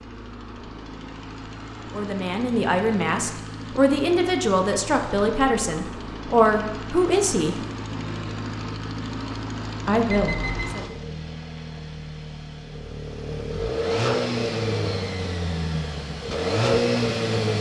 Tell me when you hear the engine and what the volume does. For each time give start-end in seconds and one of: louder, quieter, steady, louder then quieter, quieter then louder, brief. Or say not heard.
0.0-17.5 louder.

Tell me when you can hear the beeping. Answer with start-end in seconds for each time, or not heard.
10.1-10.8.